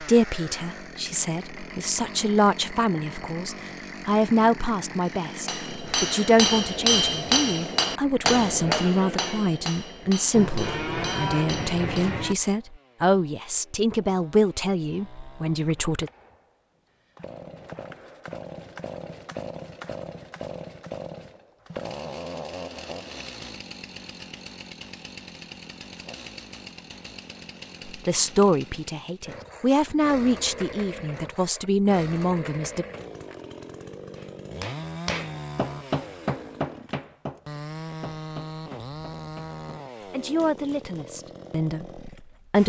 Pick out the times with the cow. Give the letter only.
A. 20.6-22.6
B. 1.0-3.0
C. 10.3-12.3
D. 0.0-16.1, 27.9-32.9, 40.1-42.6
C.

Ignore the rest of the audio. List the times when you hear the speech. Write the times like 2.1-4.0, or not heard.
0.0-16.1, 27.9-32.9, 40.1-42.6.